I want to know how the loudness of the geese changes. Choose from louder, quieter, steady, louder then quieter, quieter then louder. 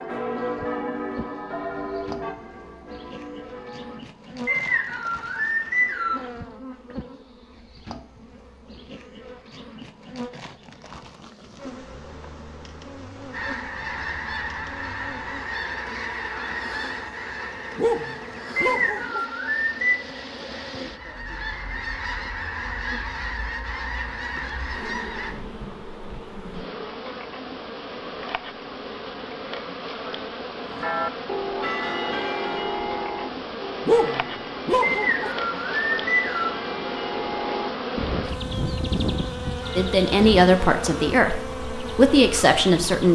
quieter then louder.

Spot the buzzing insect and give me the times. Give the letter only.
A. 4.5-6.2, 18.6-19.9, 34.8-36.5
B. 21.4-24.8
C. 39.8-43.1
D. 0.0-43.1
D.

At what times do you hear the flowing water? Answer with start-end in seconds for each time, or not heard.
not heard.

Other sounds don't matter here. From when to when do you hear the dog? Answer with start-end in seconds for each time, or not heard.
17.8-19.2, 33.9-35.3.